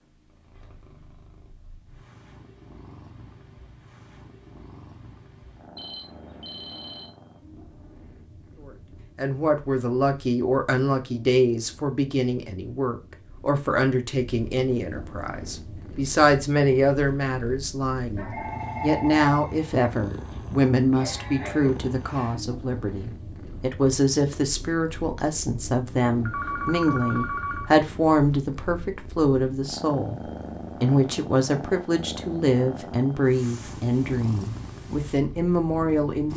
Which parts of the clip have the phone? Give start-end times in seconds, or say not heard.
5.8-7.1, 18.1-19.7, 26.2-27.7.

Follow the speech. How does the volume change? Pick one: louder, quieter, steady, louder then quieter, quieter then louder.
steady.